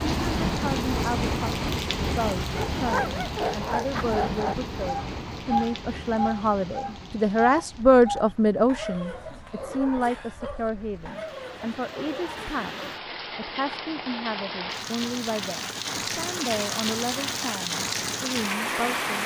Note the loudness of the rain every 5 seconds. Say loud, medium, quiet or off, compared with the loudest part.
loud, quiet, medium, loud.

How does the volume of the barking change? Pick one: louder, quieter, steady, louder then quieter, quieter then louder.
quieter.